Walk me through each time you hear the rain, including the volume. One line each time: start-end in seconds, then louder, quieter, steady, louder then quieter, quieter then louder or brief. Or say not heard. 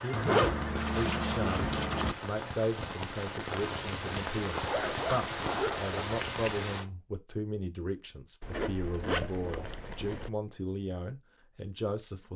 0.0-6.8 louder.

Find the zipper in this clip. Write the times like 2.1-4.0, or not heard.
0.1-2.1, 4.5-6.0, 8.4-10.3.